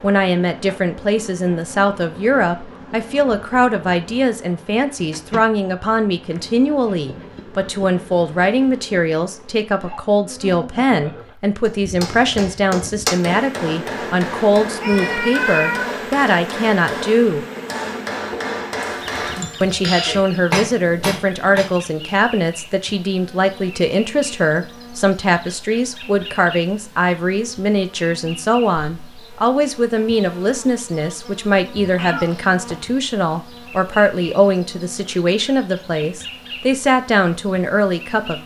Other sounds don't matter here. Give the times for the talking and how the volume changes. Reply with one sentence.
The talking can be heard from 0.0 to 17.4 s, at a steady volume; and from 19.6 to 38.4 s, at a steady volume.